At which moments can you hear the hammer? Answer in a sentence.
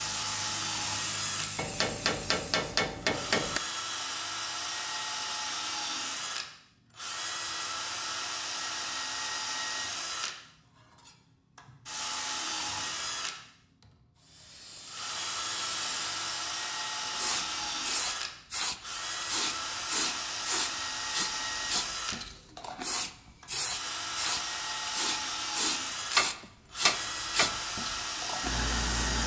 The hammer can be heard from 1.6 to 3.6 s and from 26.1 to 27.6 s.